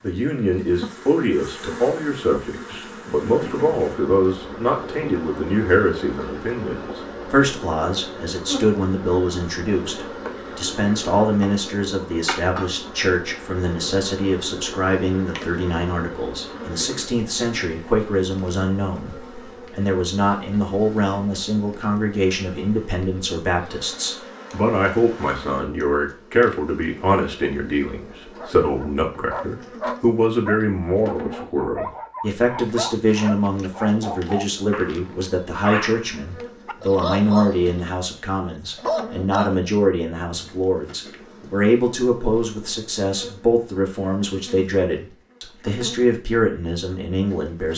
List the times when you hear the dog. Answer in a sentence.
You can hear the dog from 28.4 to 38.0 s and from 38.8 to 39.5 s.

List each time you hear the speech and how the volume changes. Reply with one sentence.
You can hear the speech from 0.0 to 47.7 s, at a steady volume.